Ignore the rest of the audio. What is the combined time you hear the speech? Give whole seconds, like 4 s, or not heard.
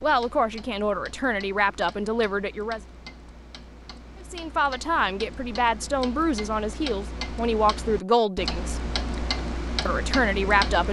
8 s.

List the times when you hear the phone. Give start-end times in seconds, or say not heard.
not heard.